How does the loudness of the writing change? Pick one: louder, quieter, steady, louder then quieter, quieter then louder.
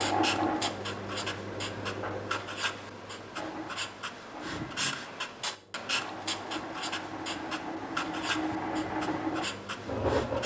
steady.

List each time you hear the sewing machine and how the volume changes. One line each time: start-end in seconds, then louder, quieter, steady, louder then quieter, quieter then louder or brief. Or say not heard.
0.0-10.4 quieter then louder.